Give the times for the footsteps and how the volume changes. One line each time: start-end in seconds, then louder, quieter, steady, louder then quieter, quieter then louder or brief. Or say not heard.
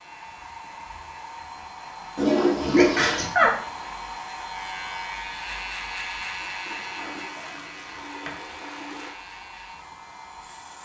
not heard.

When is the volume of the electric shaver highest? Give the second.
6 s.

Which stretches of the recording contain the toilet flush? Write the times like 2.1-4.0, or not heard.
2.1-3.2, 6.7-9.2.